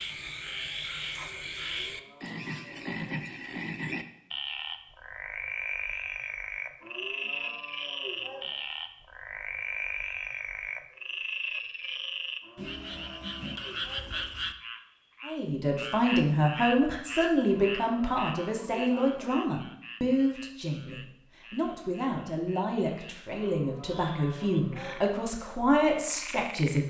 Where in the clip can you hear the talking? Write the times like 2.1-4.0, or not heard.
15.2-26.8.